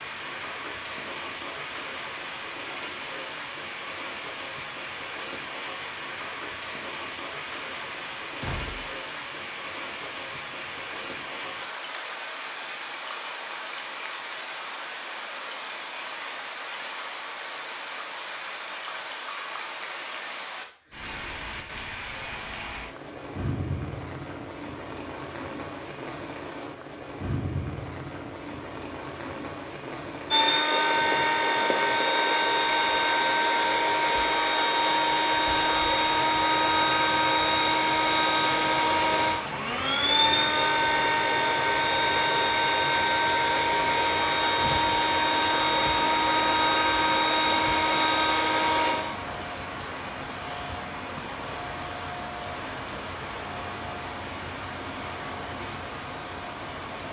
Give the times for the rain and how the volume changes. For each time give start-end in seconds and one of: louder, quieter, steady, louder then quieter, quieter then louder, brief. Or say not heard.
0.0-57.0 steady.